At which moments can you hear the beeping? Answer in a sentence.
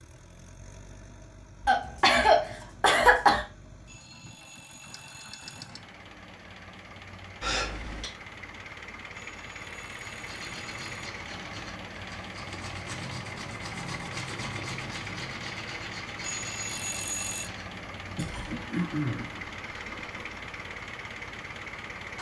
The beeping can be heard from 3.9 to 5.7 s, from 9.2 to 10.8 s and from 16.2 to 17.5 s.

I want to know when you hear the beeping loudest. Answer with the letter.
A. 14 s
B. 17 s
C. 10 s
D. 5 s
B.